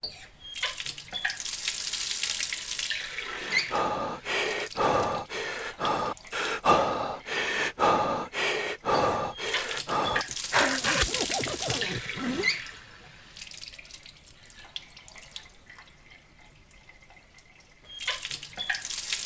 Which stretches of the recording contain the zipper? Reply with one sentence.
The zipper can be heard from 10.1 to 12.5 s.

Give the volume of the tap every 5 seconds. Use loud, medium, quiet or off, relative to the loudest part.
loud, medium, loud, loud.